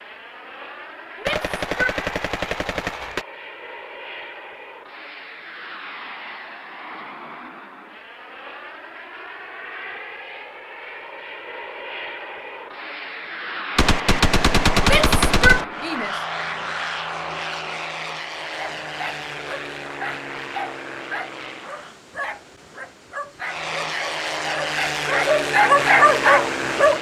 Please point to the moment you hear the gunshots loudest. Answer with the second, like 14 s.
15 s.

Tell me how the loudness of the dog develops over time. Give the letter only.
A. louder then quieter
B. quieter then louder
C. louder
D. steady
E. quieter
C.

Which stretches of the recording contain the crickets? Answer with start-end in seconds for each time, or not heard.
not heard.